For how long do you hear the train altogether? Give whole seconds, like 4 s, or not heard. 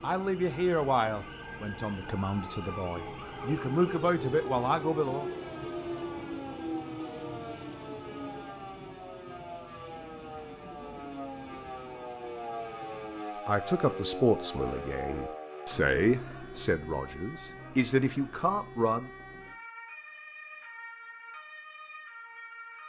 13 s.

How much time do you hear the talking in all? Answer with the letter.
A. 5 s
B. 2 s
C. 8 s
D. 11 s
D.